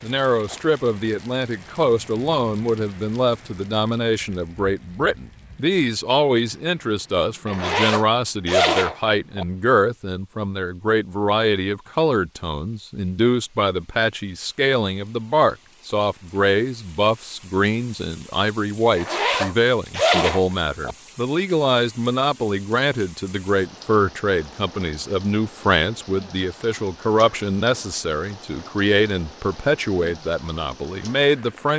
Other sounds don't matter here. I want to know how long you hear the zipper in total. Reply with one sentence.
The zipper can be heard for 4 seconds in total.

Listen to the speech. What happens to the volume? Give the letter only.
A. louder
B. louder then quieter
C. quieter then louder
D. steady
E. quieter
D.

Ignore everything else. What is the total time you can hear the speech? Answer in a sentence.
The speech can be heard for 32 seconds in total.